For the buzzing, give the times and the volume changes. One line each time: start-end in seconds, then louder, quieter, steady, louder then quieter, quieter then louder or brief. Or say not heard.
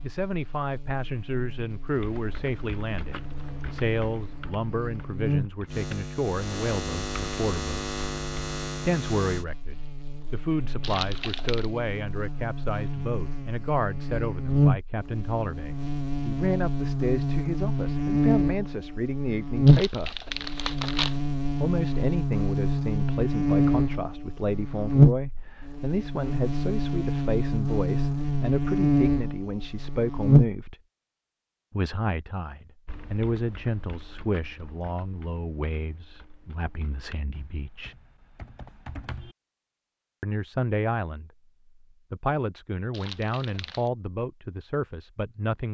0.0-30.6 louder.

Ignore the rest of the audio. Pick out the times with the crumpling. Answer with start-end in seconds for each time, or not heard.
10.8-11.7, 19.6-21.2, 42.9-43.9.